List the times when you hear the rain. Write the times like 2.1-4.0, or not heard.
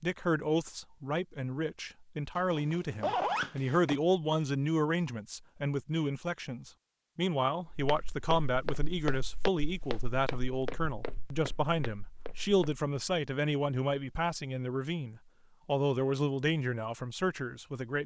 not heard.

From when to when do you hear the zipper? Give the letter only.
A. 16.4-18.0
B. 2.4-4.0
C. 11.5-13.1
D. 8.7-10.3
B.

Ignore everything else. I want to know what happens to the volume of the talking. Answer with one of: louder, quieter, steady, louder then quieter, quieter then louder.
steady.